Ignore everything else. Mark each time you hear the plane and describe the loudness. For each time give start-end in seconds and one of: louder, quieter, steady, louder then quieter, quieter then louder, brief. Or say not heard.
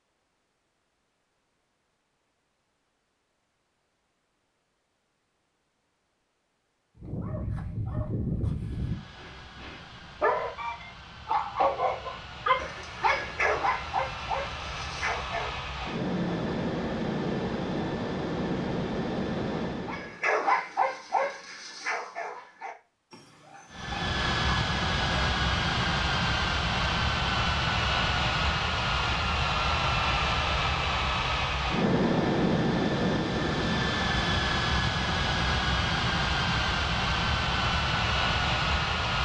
8.5-20.1 louder
23.7-39.1 steady.